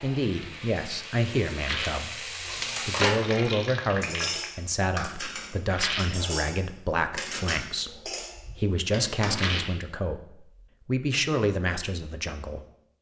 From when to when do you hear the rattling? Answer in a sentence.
The rattling can be heard from 1.6 to 2.0 s, from 5.7 to 6.2 s and from 9.3 to 9.8 s.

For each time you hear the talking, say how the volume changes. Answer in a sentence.
The talking can be heard from 0.0 to 12.7 s, at a steady volume.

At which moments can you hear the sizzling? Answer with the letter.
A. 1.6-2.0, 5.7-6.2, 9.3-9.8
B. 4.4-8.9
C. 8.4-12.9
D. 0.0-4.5
D.